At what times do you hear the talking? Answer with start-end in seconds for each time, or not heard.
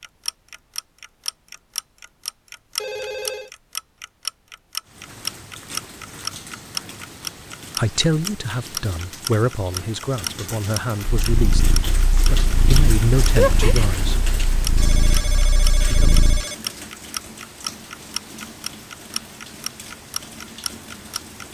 7.8-14.2, 15.8-16.2.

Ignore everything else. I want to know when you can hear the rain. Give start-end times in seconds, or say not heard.
4.8-21.4.